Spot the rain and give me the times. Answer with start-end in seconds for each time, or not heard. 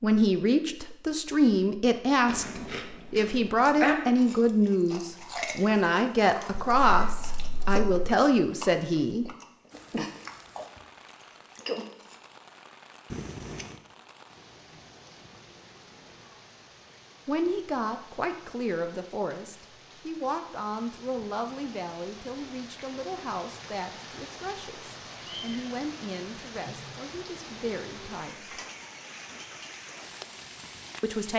9.7-31.3.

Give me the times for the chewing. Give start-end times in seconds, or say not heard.
2.2-12.2.